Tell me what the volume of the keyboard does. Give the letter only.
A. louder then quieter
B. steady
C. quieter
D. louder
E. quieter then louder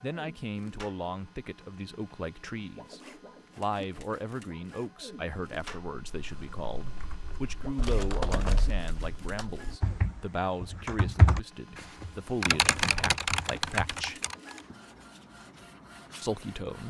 D.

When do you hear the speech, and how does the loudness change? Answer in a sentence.
The speech can be heard from 0.0 to 14.2 s, at a steady volume; and briefly from 16.2 to 16.8 s.